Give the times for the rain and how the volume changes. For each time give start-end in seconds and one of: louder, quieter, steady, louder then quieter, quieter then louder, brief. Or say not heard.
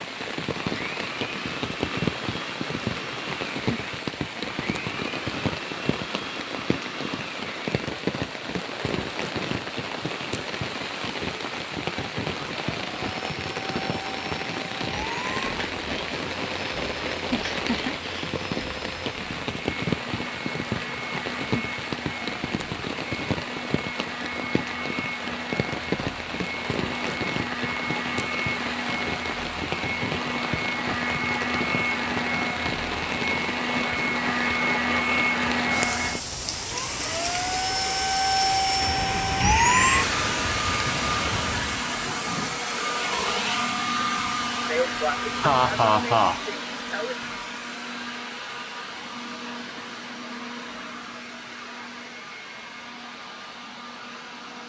0.0-42.0 steady.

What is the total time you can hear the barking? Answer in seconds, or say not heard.
not heard.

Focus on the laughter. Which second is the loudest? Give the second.
46 s.